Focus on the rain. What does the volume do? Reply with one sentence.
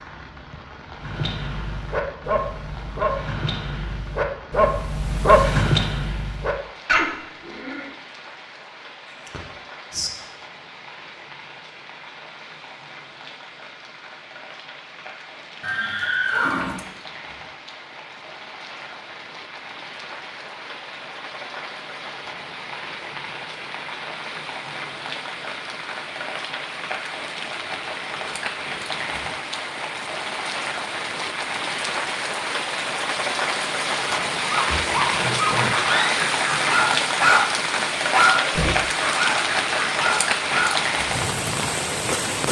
The volume of the rain goes up.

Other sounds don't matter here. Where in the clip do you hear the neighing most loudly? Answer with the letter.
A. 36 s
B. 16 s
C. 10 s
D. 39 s
B.